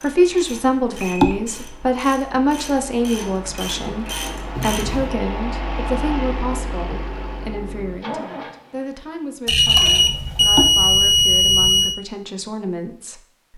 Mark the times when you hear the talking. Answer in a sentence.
The talking can be heard from 0.0 to 13.5 s.